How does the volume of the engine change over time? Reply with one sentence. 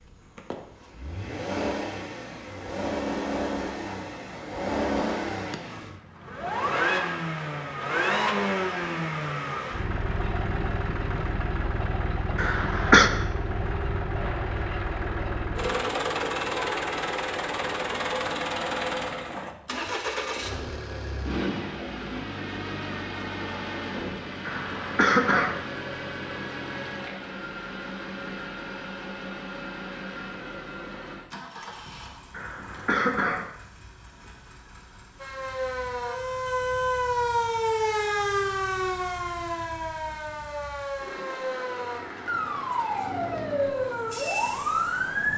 The volume of the engine goes down.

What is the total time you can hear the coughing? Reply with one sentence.
You can hear the coughing for 3 seconds altogether.